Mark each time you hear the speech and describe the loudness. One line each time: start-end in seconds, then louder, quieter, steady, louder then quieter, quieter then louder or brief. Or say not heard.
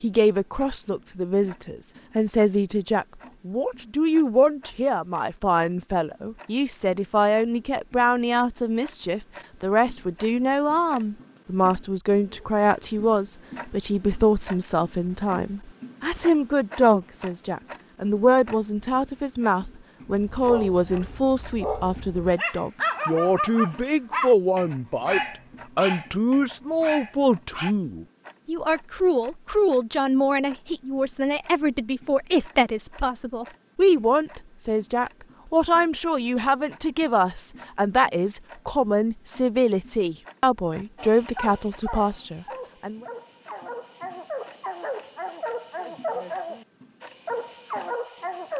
0.0-43.0 steady.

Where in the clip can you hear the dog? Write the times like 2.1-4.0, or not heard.
20.1-27.8, 41.0-48.5.